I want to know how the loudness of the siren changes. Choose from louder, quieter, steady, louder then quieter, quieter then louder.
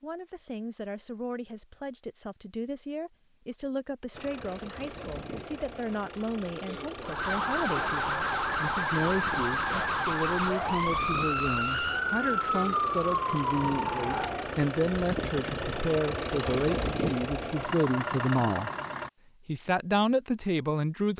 steady.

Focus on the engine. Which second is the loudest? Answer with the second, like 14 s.
17 s.